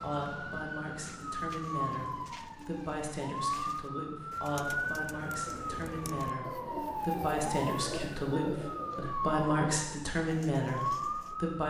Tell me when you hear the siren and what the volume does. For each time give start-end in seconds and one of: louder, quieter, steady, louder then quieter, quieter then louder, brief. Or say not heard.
0.0-11.6 steady.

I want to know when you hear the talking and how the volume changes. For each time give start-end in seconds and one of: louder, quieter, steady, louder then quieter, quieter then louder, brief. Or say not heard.
0.0-11.6 louder.